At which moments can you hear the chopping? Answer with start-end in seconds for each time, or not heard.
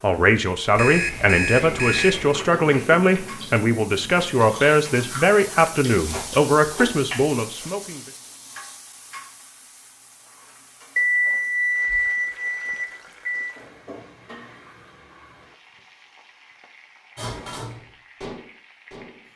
not heard.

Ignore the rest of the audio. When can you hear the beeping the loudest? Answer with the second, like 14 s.
11 s.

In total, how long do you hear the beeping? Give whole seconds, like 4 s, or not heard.
4 s.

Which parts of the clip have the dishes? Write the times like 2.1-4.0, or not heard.
17.1-19.2.